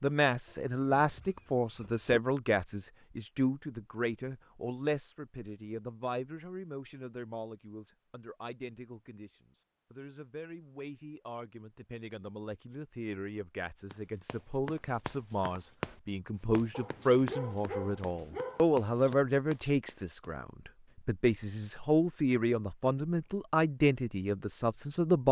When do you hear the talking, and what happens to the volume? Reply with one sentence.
You can hear the talking from 0.0 to 25.2 s, getting quieter then louder.